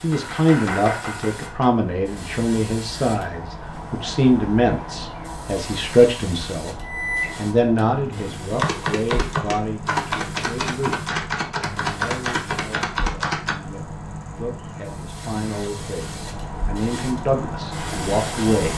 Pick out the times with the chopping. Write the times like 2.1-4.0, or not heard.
0.0-1.7, 8.6-13.6.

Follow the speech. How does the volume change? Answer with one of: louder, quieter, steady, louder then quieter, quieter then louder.
quieter then louder.